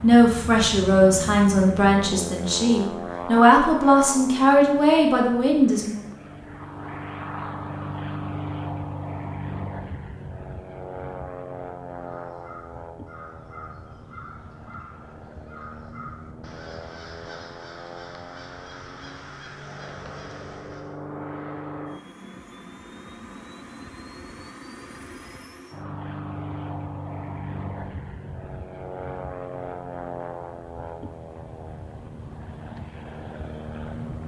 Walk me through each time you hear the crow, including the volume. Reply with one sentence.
The crow can be heard from 11.9 to 21.0 s, at a steady volume.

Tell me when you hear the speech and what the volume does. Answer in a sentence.
You can hear the speech from 0.0 to 6.0 s, at a steady volume.